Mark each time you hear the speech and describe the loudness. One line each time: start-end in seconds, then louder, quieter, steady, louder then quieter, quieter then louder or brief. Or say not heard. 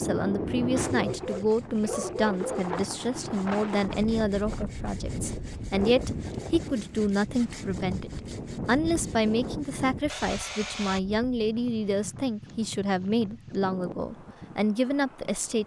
0.0-15.6 steady.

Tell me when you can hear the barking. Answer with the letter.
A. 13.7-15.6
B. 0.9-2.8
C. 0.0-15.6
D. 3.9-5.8
B.